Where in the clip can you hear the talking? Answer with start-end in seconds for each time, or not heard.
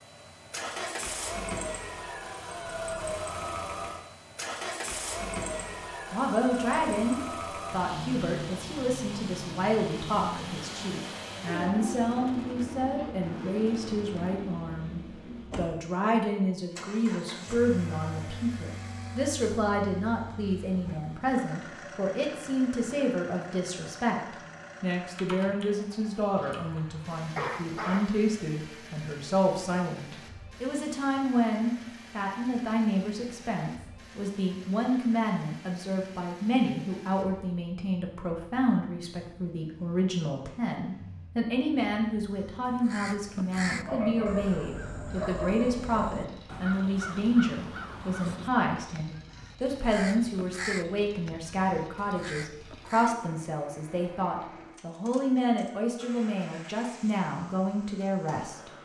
5.5-58.7.